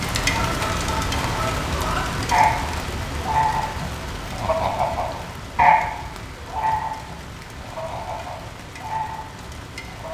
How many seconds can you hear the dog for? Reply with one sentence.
The dog can't be heard in this clip.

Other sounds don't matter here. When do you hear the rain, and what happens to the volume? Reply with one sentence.
You can hear the rain from 0.0 to 10.0 s, getting quieter.